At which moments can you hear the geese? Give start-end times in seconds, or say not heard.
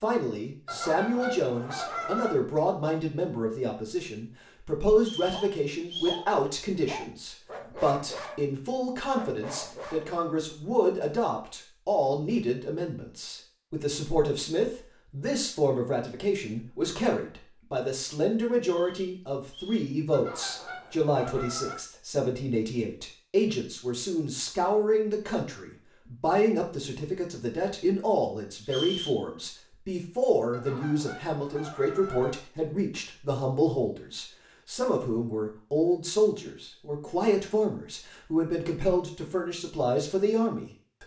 0.7-2.4, 20.1-21.8, 30.5-32.4.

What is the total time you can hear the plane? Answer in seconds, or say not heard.
not heard.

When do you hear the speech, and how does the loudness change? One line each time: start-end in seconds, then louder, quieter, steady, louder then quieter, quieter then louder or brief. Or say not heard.
0.0-41.0 steady.